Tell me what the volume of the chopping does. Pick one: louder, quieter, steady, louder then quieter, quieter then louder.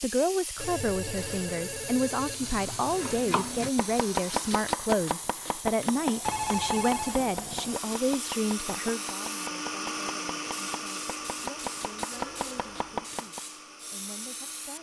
quieter then louder.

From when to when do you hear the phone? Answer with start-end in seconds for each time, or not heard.
0.6-3.4, 6.2-7.8, 12.1-12.9.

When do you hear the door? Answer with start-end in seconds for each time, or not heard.
not heard.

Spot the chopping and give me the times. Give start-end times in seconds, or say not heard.
2.8-13.4.